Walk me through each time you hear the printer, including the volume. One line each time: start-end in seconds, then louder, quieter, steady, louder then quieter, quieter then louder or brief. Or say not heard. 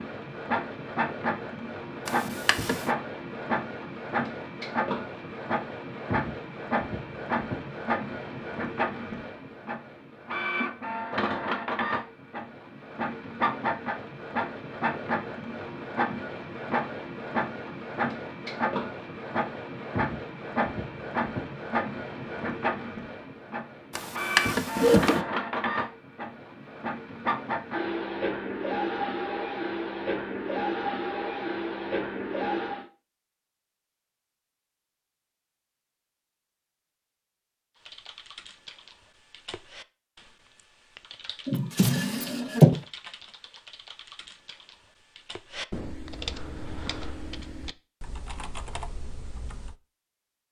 0.0-32.9 steady.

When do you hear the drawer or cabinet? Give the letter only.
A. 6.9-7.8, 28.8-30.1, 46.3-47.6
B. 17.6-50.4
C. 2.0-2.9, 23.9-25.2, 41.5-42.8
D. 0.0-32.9
C.